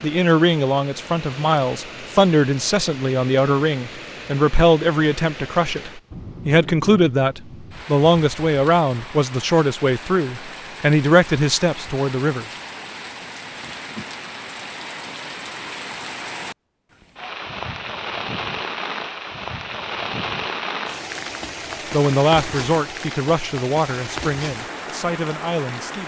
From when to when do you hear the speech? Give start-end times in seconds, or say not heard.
0.0-12.4, 21.9-26.0.